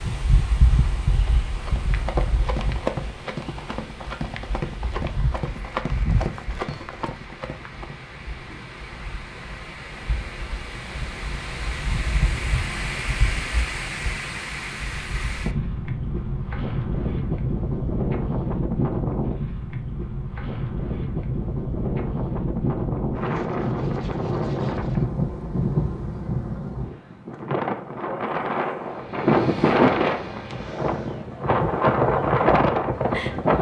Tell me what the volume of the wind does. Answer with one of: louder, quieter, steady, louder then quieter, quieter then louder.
louder.